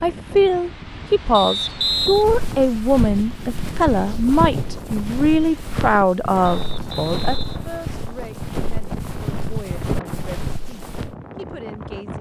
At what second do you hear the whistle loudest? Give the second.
2 s.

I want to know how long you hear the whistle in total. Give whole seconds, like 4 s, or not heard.
2 s.